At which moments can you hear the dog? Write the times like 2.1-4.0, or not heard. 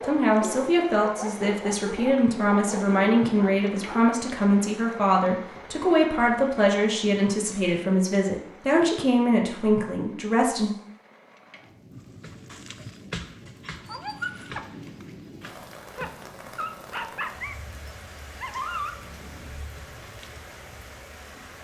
0.0-4.0, 11.9-20.4.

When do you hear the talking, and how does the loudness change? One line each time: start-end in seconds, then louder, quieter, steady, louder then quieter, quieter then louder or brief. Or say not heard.
0.0-10.7 steady.